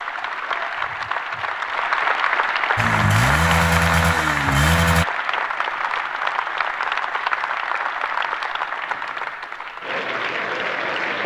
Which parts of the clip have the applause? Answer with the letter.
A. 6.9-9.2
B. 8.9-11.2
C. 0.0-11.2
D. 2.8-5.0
C.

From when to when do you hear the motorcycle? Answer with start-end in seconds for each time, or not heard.
2.8-5.0.